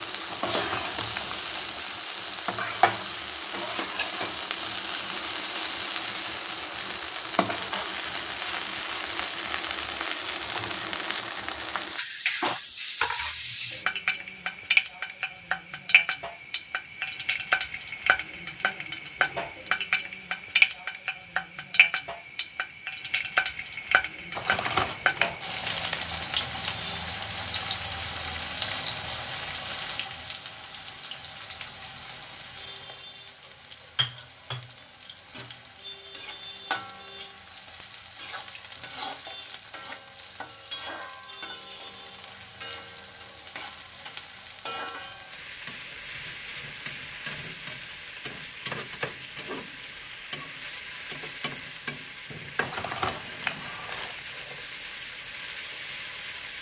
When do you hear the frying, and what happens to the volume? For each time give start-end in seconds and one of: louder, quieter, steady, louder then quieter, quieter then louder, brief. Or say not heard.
0.0-56.5 quieter.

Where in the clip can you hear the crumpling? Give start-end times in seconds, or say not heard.
0.3-1.4, 24.4-26.2, 52.6-54.2.